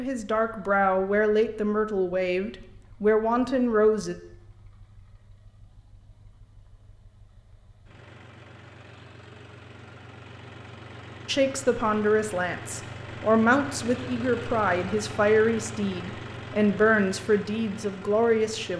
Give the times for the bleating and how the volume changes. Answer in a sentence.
You can't hear the bleating here.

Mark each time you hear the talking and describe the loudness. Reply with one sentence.
You can hear the talking from 0.0 to 4.2 s, at a steady volume; and from 11.2 to 18.7 s, at a steady volume.